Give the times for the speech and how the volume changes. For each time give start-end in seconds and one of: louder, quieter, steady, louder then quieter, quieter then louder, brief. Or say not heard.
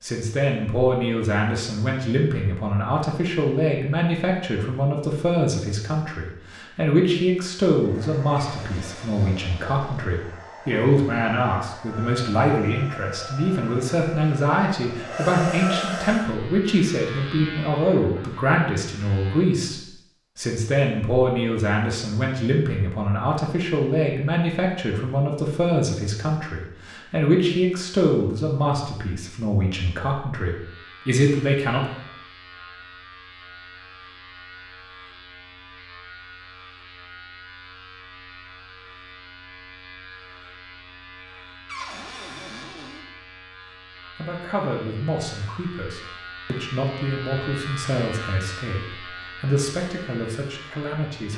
0.0-31.9 steady
44.1-51.3 steady.